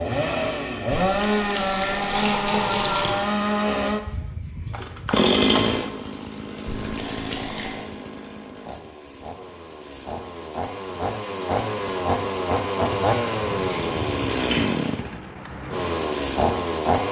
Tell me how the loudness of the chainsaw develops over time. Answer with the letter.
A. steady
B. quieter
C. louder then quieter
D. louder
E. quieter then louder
E.